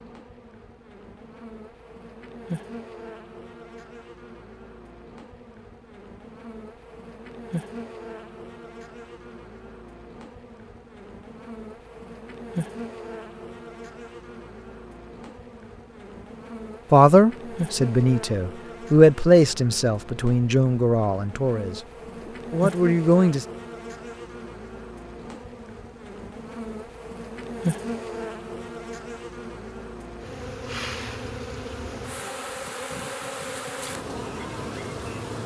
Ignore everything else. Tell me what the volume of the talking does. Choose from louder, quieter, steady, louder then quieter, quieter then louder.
louder then quieter.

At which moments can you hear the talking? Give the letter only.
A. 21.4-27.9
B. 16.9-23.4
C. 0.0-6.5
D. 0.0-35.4
B.